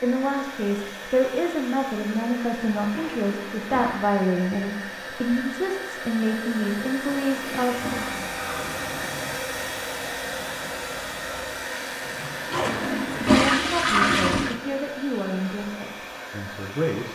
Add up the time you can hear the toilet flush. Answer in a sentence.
You can hear the toilet flush for 6 seconds altogether.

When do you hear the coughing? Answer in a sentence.
The coughing can't be heard in this clip.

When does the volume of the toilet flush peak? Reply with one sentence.
The volume of the toilet flush peaks at 14 seconds.